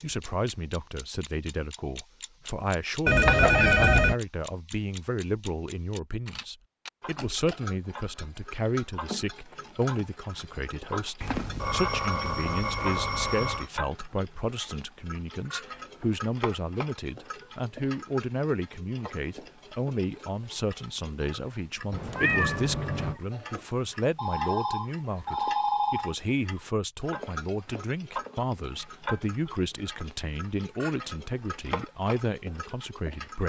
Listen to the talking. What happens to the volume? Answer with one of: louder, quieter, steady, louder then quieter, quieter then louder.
steady.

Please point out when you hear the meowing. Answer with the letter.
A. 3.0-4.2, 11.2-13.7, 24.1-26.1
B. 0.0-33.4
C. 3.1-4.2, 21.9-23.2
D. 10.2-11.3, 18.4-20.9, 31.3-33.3
C.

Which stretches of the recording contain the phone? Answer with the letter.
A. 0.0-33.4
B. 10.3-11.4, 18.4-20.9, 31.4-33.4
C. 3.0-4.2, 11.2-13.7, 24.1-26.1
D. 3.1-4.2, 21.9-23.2
C.